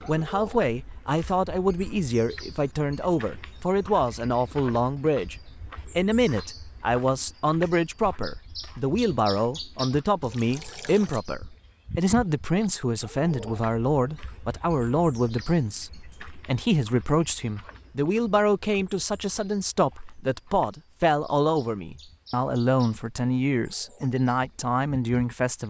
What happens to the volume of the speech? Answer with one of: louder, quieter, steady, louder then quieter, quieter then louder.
steady.